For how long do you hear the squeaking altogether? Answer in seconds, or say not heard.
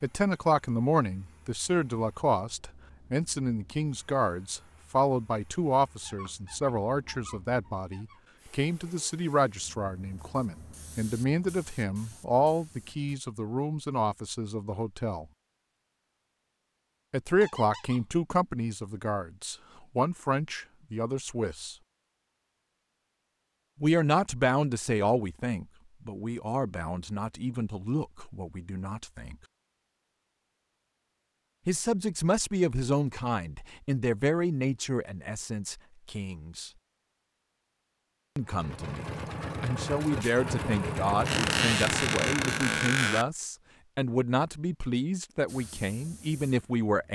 5 s.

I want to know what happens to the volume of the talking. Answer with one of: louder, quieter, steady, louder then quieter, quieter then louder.
steady.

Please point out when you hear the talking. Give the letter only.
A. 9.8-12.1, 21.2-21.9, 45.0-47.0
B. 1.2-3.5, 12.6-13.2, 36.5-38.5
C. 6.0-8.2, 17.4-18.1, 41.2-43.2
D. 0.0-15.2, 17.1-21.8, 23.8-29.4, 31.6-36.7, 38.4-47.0
D.